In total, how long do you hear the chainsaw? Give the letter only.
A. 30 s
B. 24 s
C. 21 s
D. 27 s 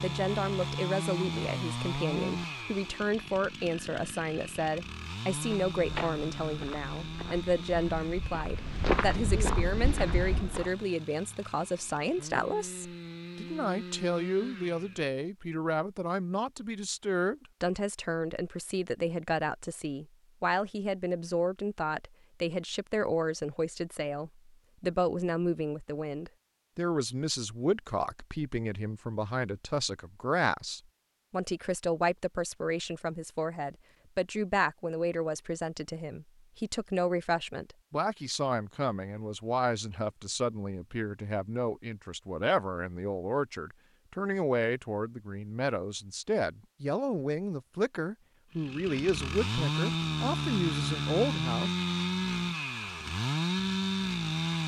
C.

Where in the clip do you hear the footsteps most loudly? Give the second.
9 s.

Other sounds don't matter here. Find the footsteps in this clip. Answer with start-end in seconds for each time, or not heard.
5.3-10.7.